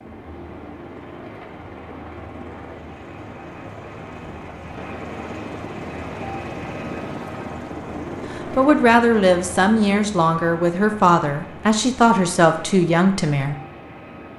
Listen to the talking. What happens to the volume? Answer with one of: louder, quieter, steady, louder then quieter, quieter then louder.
steady.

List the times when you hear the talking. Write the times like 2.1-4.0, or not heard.
8.5-13.6.